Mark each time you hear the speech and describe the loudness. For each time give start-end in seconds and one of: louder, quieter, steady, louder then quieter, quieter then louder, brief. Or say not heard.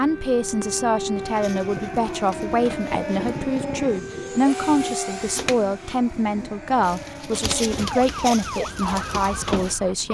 0.0-10.0 steady.